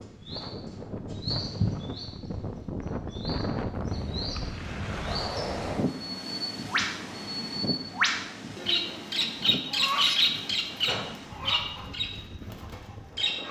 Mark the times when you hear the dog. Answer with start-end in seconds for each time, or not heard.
not heard.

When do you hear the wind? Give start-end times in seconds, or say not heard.
0.0-13.4.